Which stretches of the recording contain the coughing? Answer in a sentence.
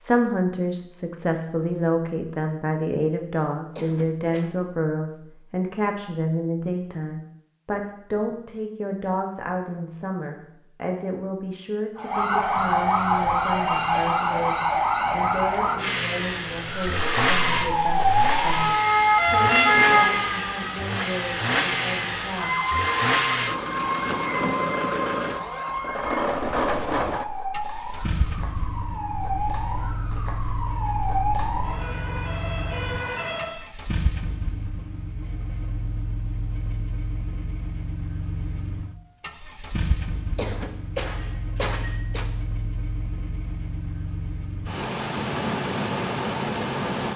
You can hear the coughing from 3.8 to 4.5 s and from 40.4 to 42.2 s.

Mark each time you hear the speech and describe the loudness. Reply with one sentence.
The speech can be heard from 0.0 to 22.6 s, getting quieter.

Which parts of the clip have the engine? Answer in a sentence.
The engine can be heard from 15.8 to 47.1 s.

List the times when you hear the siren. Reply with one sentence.
You can hear the siren from 11.9 to 33.6 s.